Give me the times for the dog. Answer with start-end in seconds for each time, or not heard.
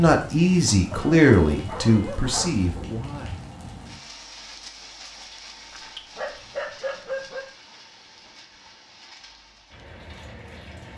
0.9-2.8, 5.7-7.5.